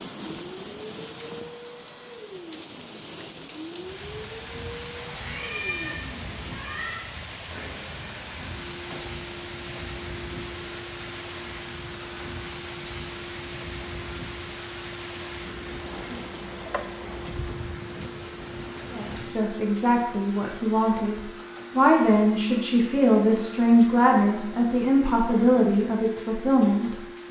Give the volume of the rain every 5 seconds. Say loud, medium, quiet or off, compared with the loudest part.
loud, loud, loud, loud, off, off.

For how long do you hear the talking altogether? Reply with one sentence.
The talking can be heard for 8 seconds in total.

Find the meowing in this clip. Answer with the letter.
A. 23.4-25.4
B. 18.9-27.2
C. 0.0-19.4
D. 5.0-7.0
D.